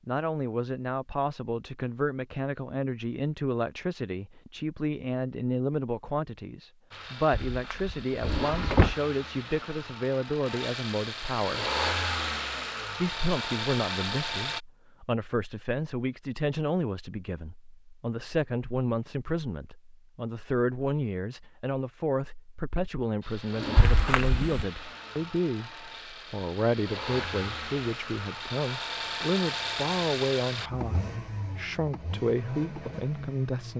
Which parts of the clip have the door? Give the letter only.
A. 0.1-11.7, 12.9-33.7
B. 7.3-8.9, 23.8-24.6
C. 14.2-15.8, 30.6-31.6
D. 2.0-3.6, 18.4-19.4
B.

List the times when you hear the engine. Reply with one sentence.
The engine can be heard from 6.9 to 14.6 s and from 23.2 to 33.7 s.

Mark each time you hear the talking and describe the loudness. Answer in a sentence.
You can hear the talking from 0.1 to 11.7 s, at a steady volume; and from 12.9 to 33.7 s, at a steady volume.